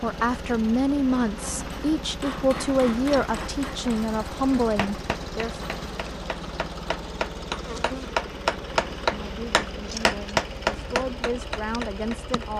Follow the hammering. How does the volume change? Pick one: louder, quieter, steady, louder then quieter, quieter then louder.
louder.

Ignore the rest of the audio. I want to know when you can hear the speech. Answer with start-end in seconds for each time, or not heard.
0.0-5.5, 9.2-12.5.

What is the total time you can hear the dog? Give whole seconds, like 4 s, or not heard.
not heard.